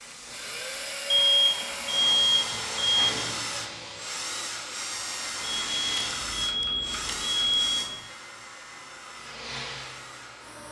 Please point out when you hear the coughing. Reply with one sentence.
The coughing can't be heard in this clip.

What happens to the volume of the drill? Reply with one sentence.
The volume of the drill goes down.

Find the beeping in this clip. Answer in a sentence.
The beeping can be heard from 1.1 to 3.1 s and from 5.4 to 8.0 s.